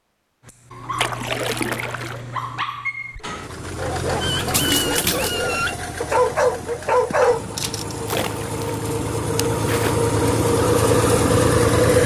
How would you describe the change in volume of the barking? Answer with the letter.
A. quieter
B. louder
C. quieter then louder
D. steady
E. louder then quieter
B.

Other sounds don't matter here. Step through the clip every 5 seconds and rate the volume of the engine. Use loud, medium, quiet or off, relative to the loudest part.
medium, medium, loud.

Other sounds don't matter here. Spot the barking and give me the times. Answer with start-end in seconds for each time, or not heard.
0.5-8.0.